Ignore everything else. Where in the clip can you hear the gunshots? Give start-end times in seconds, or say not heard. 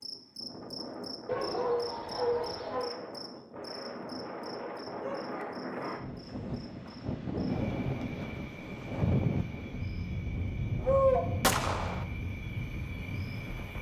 11.4-12.1.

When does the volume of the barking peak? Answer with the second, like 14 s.
11 s.